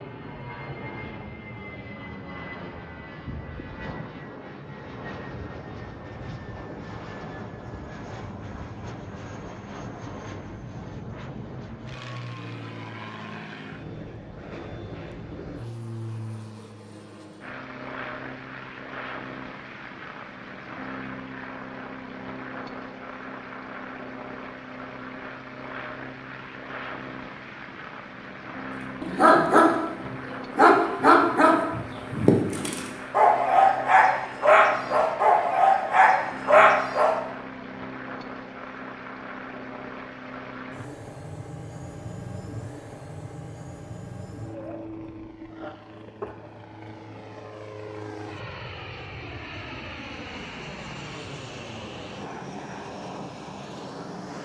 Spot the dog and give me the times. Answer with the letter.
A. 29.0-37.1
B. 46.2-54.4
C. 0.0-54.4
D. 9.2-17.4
A.